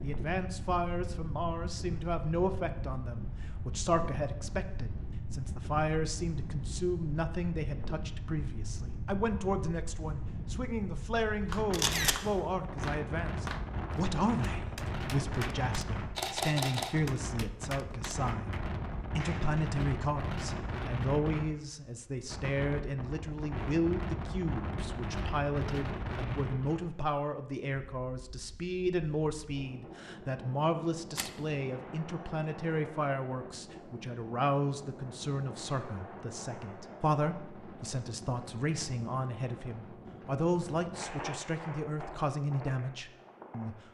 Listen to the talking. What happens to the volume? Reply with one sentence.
The loudness of the talking stays about the same.